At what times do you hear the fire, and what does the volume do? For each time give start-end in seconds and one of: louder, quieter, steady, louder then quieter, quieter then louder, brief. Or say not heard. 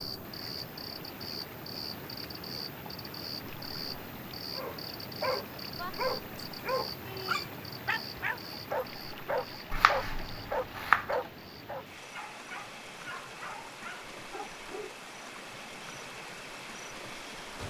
not heard.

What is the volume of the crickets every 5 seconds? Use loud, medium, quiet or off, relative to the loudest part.
loud, loud, medium, medium.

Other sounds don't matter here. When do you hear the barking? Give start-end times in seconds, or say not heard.
4.5-14.9.